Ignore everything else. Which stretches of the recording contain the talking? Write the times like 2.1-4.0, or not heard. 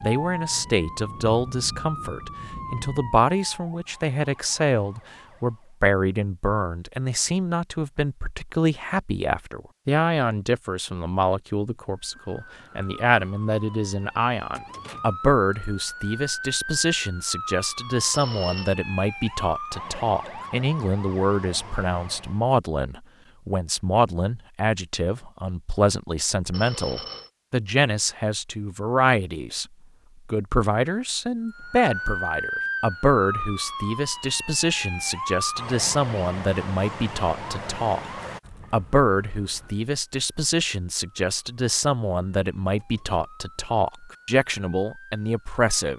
0.0-29.6, 30.2-38.0, 38.7-45.9.